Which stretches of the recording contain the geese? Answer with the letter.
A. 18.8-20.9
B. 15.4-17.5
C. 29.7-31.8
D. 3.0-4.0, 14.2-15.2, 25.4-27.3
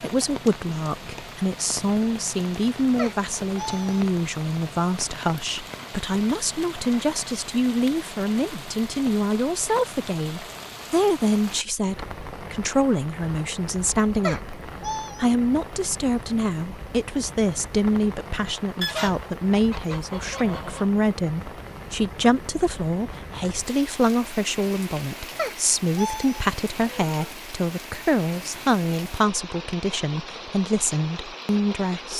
A.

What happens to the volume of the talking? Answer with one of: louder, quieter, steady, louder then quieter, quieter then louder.
steady.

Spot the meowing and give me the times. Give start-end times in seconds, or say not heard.
3.0-4.0, 14.2-15.2, 25.4-27.3.